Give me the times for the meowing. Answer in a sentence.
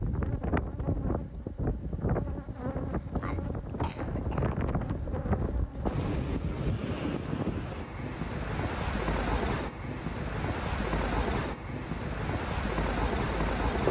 The meowing can't be heard in this clip.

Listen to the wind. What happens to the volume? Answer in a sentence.
The loudness of the wind stays about the same.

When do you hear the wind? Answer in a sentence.
The wind can be heard from 0.0 to 13.8 s.